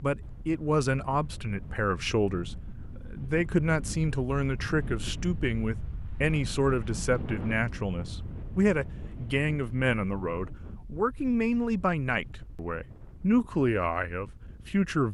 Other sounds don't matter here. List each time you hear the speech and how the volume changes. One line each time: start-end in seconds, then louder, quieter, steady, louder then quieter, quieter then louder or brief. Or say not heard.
0.0-15.0 steady.